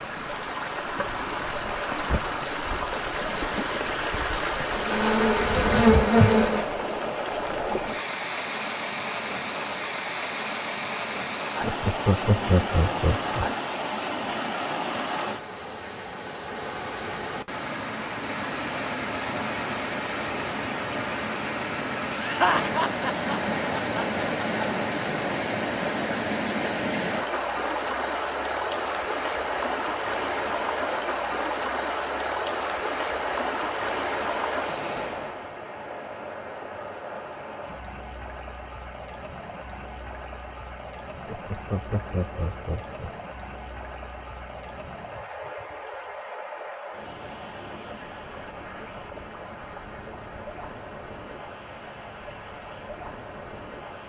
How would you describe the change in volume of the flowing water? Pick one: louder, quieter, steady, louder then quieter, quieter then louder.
quieter.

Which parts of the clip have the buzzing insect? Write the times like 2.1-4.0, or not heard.
4.8-7.5.